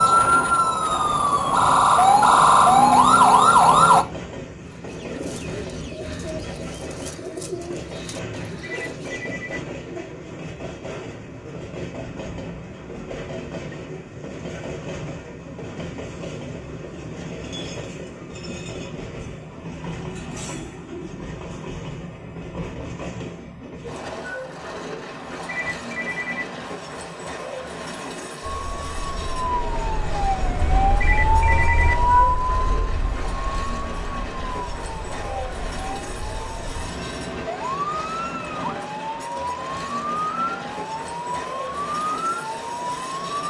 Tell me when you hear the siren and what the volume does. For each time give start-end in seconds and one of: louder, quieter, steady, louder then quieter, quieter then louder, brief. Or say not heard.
0.0-4.0 louder
28.4-43.4 quieter then louder.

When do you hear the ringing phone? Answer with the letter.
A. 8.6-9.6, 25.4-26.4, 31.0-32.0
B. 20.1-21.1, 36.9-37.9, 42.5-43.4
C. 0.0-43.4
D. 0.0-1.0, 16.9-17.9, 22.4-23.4
A.